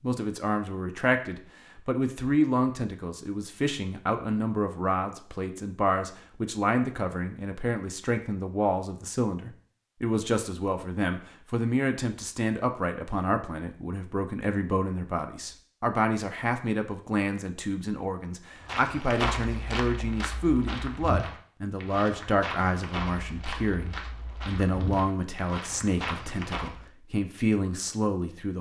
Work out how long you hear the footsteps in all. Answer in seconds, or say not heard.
8 s.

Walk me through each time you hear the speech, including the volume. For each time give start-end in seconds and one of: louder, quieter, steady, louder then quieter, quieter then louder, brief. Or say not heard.
0.0-28.5 steady.